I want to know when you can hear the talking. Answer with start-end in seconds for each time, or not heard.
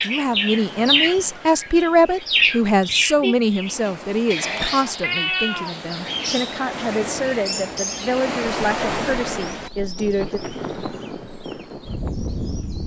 0.0-10.4.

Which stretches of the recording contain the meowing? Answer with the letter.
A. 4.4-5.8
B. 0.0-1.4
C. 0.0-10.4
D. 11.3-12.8
A.